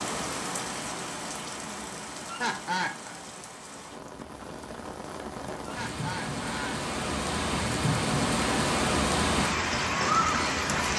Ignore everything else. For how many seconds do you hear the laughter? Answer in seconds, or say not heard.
2 s.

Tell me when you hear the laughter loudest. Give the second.
3 s.